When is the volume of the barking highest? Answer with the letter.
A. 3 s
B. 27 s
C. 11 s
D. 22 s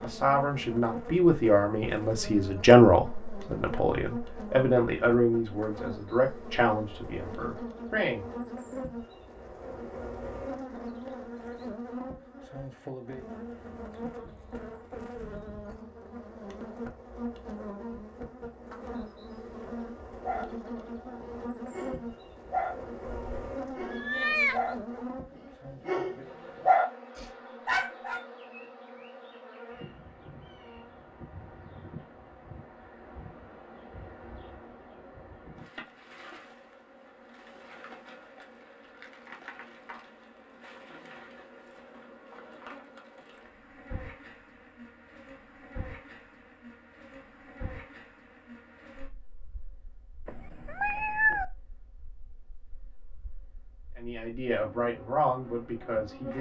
B.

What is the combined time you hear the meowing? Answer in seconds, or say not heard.
3 s.